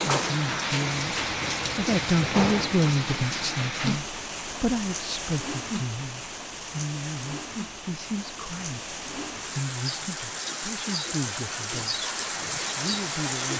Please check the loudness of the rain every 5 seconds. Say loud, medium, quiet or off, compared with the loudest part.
loud, medium, loud.